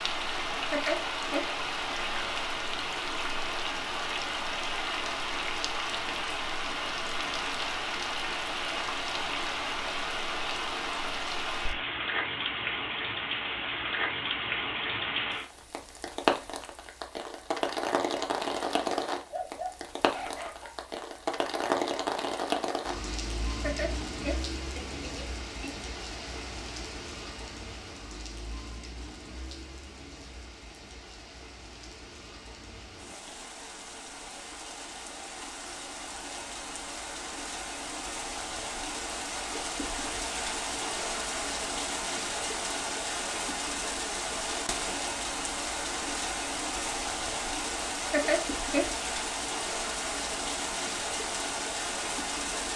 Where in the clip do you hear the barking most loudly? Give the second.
20 s.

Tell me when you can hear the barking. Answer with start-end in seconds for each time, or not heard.
19.1-20.8.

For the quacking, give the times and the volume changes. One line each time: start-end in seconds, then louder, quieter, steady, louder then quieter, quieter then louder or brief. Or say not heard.
not heard.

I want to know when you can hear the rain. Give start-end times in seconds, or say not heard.
0.0-52.7.